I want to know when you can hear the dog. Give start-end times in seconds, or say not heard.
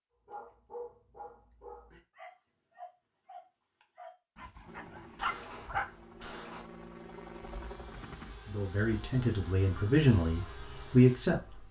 0.2-5.9.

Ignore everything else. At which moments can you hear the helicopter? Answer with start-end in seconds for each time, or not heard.
4.7-8.3.